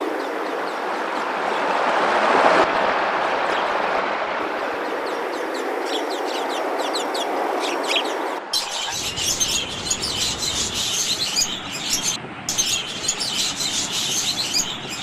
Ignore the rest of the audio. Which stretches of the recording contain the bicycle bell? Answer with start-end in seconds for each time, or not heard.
not heard.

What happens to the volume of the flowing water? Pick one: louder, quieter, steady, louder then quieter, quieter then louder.
quieter.